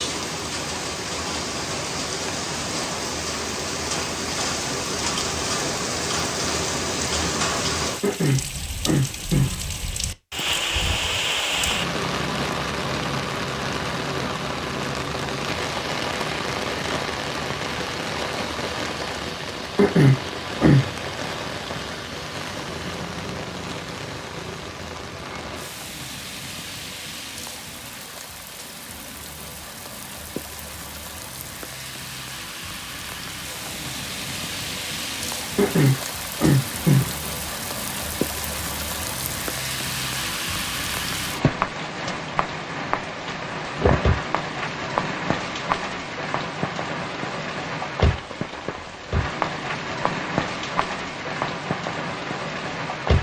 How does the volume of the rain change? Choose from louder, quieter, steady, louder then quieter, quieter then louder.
quieter then louder.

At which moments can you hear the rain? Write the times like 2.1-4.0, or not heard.
0.0-53.1.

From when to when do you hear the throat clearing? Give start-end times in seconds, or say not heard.
8.0-9.6, 19.8-20.9, 35.5-37.1.